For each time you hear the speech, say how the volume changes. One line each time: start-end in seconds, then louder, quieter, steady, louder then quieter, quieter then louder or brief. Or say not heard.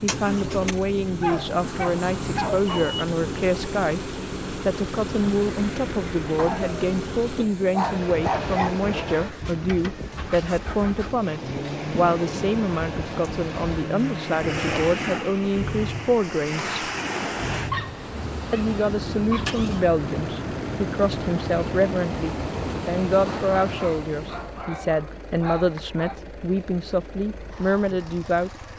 0.0-4.0 steady
4.7-16.8 steady
18.5-28.7 steady.